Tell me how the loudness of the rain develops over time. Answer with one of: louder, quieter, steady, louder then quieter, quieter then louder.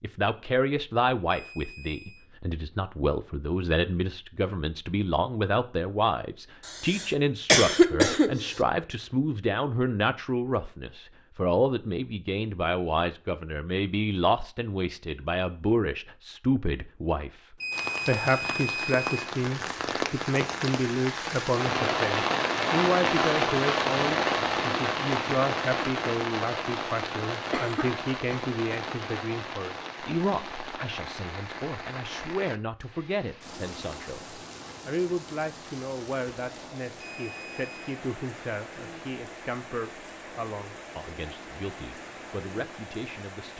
quieter.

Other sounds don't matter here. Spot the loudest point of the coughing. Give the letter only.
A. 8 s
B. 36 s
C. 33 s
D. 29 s
A.